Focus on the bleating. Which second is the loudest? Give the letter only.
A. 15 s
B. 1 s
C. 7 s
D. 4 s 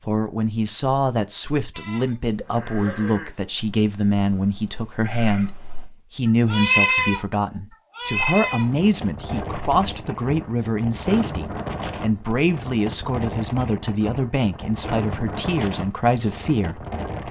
C.